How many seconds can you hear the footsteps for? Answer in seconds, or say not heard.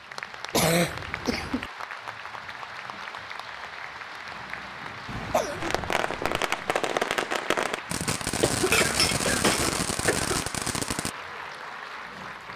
not heard.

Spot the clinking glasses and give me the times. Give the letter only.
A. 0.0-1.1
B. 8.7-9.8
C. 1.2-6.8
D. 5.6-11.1
B.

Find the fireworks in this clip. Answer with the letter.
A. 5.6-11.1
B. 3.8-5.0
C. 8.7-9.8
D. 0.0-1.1
A.